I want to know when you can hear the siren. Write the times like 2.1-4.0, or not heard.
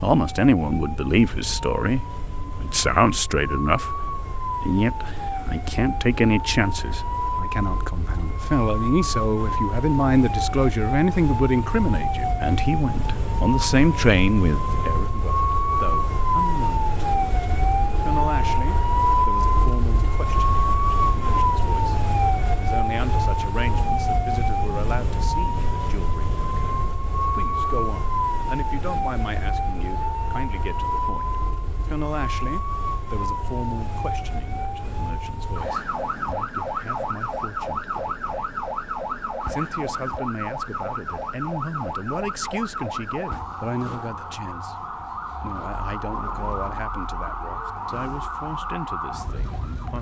0.0-49.9.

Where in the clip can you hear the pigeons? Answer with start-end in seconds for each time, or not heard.
not heard.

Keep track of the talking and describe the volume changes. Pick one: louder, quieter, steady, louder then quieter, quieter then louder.
quieter.